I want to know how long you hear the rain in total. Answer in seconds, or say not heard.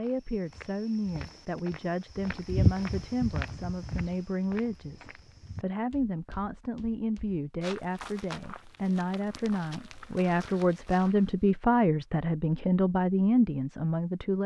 not heard.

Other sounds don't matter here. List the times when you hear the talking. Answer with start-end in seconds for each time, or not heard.
0.0-14.4.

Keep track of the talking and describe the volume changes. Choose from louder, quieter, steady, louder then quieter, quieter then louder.
louder.